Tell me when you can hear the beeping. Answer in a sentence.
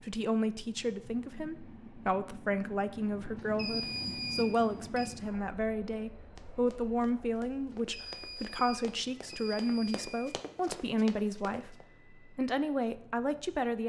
The beeping can be heard from 3.4 to 5.2 s and from 7.7 to 10.4 s.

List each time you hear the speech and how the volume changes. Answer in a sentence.
You can hear the speech from 0.0 to 13.8 s, at a steady volume.